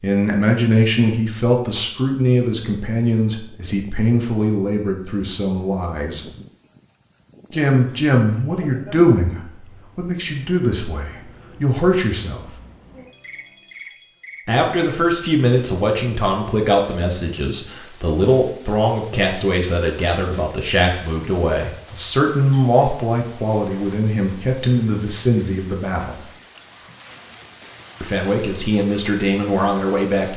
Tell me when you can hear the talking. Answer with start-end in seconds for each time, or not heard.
0.0-6.2, 7.5-12.4, 14.4-26.2, 28.0-30.3.